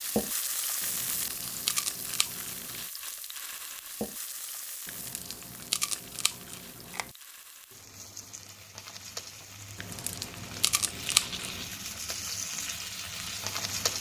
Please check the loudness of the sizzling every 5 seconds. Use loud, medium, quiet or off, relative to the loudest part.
loud, medium, loud.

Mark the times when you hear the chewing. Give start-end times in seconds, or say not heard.
0.8-2.9, 4.8-7.1, 9.8-11.7.